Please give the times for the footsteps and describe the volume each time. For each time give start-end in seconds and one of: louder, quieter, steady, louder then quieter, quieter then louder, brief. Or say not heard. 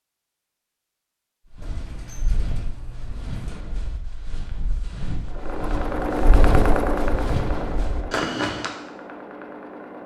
1.5-8.7 louder.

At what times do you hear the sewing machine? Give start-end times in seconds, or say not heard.
5.2-10.0.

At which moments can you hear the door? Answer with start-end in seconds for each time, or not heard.
1.6-3.6.